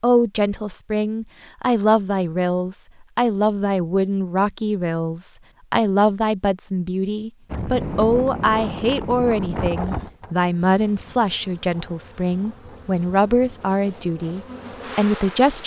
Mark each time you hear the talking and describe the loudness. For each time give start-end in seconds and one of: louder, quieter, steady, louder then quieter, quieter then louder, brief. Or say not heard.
0.0-15.6 steady.